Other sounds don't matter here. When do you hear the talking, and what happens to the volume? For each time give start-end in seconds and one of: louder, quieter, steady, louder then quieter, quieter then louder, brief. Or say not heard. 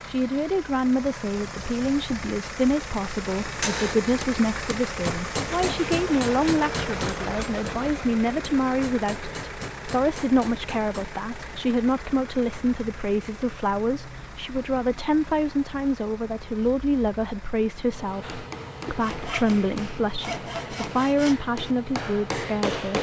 0.1-22.9 steady.